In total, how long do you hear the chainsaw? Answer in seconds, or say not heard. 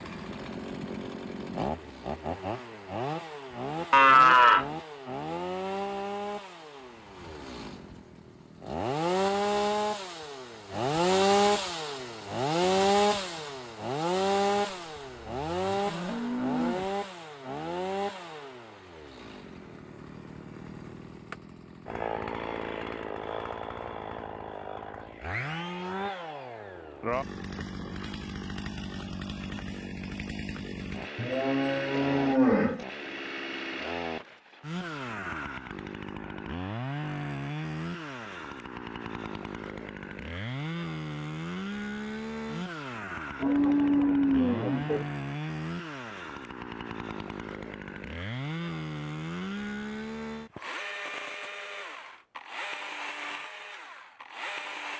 55 s.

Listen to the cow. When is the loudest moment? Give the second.
4 s.